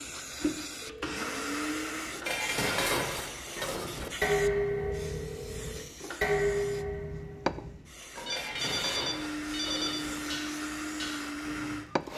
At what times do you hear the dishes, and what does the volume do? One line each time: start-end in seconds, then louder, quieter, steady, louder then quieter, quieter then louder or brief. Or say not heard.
2.2-11.8 quieter.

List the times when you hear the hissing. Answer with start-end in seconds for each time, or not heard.
0.0-12.1.